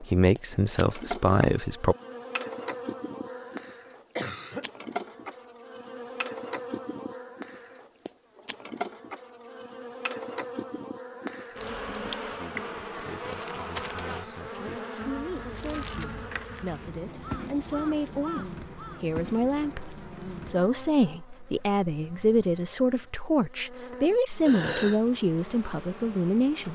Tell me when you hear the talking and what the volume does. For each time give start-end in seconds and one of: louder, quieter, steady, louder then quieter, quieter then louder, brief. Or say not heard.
0.0-1.9 brief
11.8-26.7 louder.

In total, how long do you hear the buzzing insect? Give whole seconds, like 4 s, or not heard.
27 s.